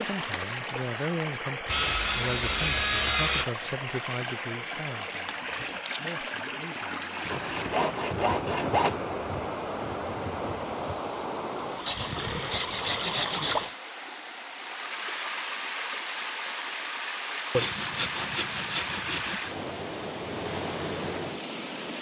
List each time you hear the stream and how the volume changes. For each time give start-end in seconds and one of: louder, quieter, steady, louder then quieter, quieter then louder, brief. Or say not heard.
0.0-21.9 steady.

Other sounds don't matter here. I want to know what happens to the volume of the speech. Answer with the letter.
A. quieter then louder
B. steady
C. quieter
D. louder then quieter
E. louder
C.